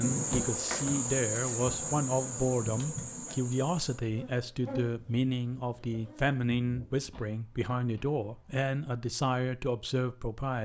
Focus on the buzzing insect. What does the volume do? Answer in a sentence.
The volume of the buzzing insect goes down.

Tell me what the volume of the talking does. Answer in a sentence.
The volume of the talking stays about the same.